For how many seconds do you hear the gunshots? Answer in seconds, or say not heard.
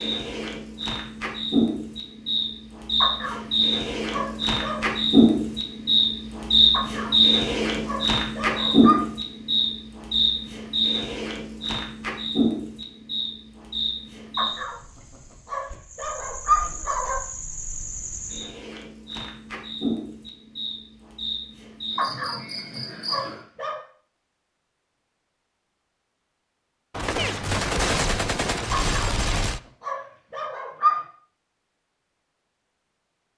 3 s.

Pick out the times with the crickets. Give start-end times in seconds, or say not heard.
0.0-23.4.